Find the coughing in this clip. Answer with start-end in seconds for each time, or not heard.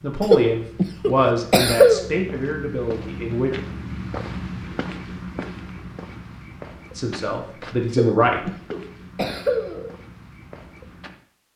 0.2-2.0, 7.9-9.9.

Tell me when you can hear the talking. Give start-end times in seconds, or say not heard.
0.0-3.5, 7.0-8.5.